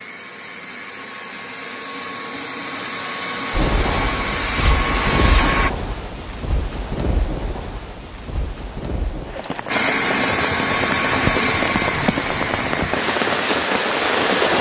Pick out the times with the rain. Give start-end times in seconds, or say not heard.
3.5-14.5.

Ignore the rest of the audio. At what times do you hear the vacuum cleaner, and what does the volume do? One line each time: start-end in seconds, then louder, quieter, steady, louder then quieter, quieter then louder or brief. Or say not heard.
0.0-5.7 louder
9.7-14.5 quieter.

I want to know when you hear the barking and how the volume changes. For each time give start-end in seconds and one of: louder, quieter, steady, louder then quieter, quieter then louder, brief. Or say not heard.
not heard.